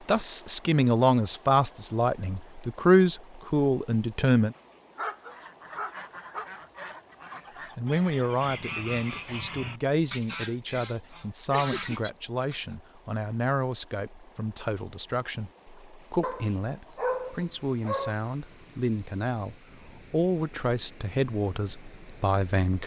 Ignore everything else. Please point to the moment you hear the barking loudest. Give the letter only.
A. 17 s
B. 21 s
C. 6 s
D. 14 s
A.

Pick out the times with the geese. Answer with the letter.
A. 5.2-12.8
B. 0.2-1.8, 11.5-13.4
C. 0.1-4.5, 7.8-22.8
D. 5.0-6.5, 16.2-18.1
A.